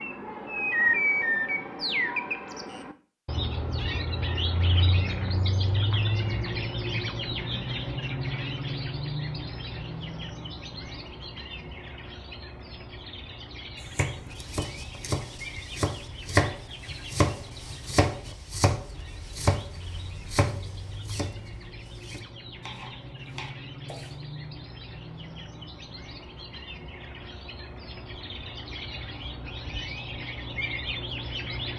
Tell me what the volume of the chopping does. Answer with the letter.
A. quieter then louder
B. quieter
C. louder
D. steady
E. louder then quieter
E.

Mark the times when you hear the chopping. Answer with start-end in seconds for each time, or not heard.
13.8-24.2.